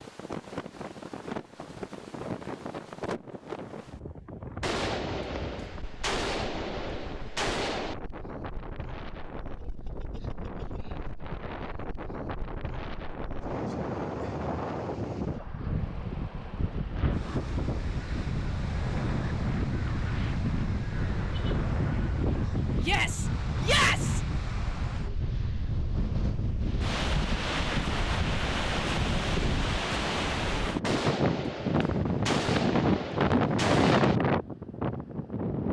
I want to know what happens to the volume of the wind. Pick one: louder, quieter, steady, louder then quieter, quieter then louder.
louder.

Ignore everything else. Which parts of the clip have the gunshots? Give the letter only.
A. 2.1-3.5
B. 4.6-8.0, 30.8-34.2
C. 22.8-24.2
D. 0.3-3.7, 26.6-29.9
B.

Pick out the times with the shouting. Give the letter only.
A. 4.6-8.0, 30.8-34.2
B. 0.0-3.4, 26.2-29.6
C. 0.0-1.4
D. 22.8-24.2
D.